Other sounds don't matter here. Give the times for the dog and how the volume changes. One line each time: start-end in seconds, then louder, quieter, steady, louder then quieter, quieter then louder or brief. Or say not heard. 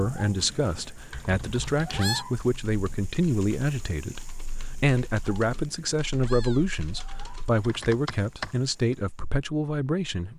not heard.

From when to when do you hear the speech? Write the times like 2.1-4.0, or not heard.
0.0-10.3.